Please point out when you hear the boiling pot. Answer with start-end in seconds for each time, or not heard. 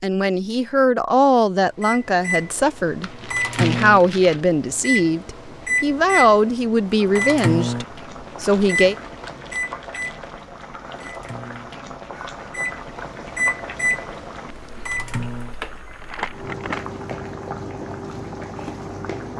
6.8-19.3.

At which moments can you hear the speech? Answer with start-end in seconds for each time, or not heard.
0.0-8.9.